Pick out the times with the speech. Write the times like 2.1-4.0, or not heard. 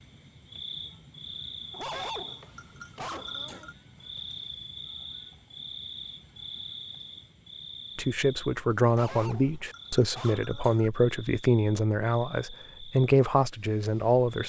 8.0-14.4.